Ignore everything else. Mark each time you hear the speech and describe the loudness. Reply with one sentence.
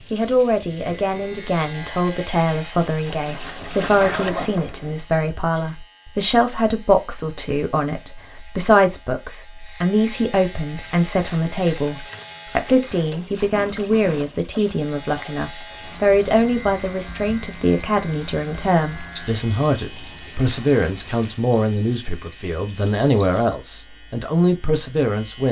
You can hear the speech from 0.1 to 25.4 s, at a steady volume.